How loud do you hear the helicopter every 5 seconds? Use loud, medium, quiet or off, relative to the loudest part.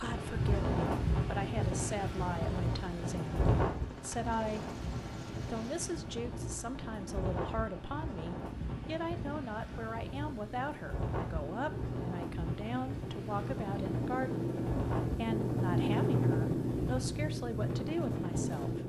quiet, quiet, medium, loud.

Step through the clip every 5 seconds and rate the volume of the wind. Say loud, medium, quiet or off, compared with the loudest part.
loud, medium, medium, medium.